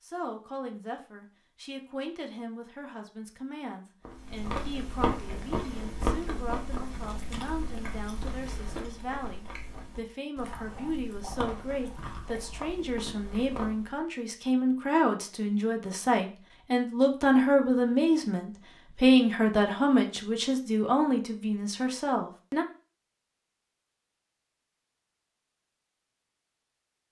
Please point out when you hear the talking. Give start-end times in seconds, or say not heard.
0.0-22.6.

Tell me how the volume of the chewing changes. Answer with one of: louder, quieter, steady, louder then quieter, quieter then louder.
quieter.